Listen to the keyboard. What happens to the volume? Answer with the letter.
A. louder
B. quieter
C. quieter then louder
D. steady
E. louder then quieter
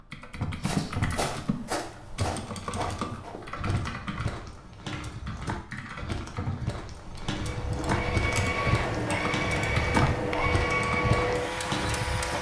C.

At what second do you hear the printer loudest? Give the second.
11 s.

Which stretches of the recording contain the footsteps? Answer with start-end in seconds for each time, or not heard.
0.6-12.3.